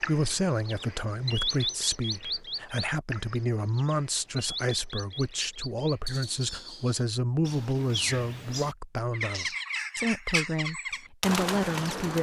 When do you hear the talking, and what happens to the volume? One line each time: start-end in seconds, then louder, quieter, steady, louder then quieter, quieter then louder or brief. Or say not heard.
0.0-12.1 steady.